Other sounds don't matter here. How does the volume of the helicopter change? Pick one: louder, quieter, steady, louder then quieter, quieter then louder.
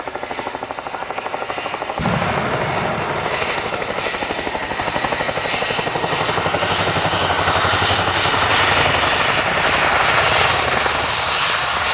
louder.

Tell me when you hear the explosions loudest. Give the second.
2 s.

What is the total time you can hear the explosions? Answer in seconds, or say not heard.
2 s.